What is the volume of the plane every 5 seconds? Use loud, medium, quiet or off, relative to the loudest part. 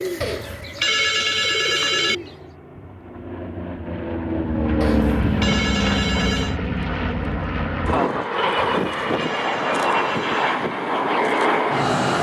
medium, loud, loud.